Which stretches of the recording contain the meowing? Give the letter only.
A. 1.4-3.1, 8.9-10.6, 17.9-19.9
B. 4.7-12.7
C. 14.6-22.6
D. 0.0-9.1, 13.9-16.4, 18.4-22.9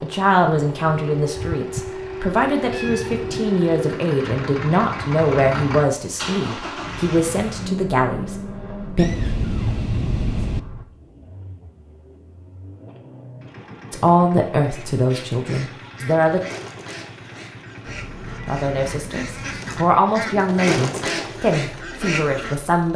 A.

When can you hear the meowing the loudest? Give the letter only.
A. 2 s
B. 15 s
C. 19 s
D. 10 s
D.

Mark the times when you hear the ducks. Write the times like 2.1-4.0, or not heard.
14.6-22.6.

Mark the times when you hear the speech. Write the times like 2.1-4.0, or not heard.
0.0-9.1, 13.9-16.4, 18.4-22.9.